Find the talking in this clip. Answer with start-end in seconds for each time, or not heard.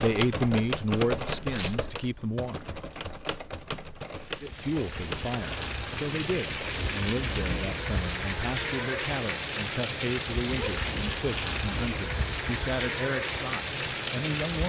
0.0-2.8, 4.4-14.6.